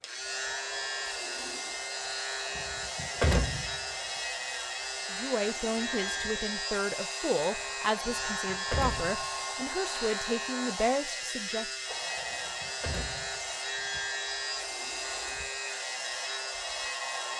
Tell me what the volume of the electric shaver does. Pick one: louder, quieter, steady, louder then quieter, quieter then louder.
steady.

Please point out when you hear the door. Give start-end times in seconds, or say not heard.
2.5-3.8, 8.1-9.2, 12.2-14.1.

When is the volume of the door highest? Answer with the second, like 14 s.
3 s.